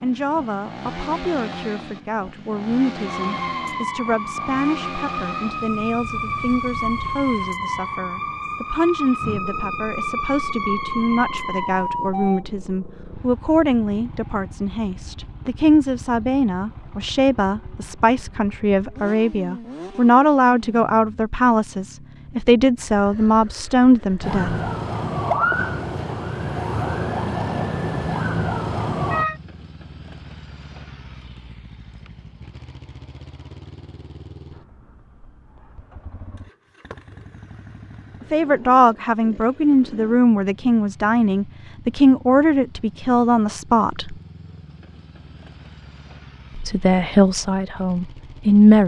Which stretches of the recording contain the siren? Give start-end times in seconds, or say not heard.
3.0-12.4, 24.2-29.4.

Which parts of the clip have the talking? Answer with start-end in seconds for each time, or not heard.
0.0-24.6, 38.3-44.1, 46.5-48.8.